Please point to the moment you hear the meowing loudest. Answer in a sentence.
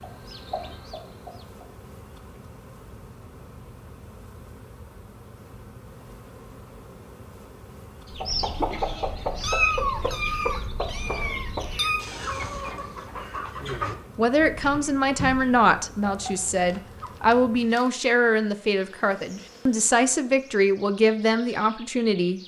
The volume of the meowing peaks at 10 seconds.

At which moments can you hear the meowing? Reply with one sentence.
You can hear the meowing from 9.4 to 12.1 s.